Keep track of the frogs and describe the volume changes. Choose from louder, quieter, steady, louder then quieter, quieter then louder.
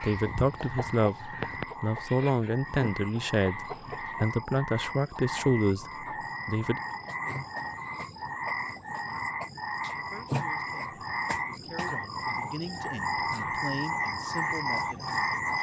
louder.